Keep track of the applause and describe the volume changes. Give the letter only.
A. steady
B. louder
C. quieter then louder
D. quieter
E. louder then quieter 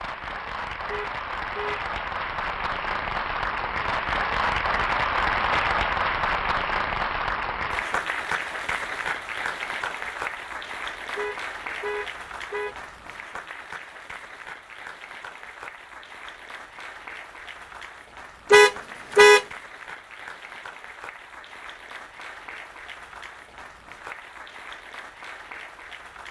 D.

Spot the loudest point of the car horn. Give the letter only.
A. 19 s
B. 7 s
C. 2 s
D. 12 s
A.